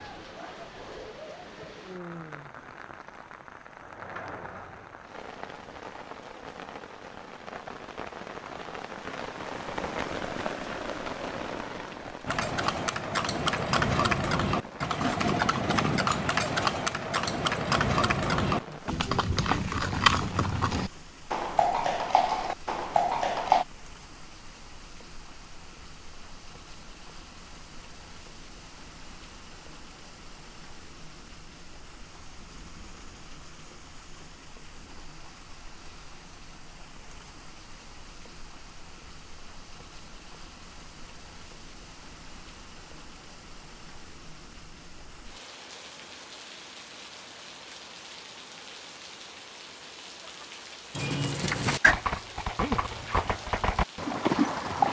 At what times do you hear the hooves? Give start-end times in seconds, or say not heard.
12.2-23.6, 51.0-54.8.